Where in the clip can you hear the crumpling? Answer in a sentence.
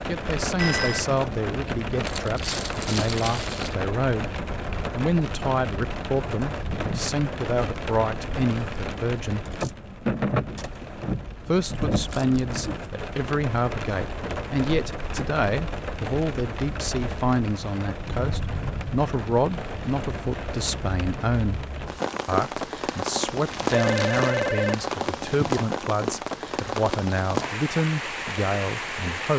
You can hear the crumpling from 2.0 to 3.8 s, from 12.0 to 12.9 s and from 23.5 to 24.4 s.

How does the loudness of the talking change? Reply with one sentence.
The volume of the talking stays about the same.